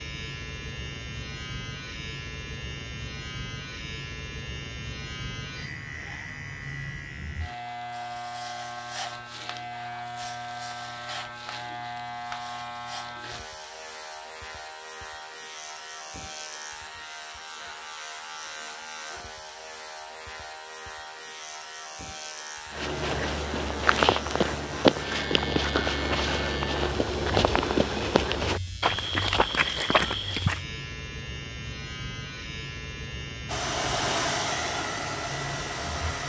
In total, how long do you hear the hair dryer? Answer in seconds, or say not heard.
3 s.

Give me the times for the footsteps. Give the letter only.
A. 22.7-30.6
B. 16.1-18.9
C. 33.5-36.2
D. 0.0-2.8
A.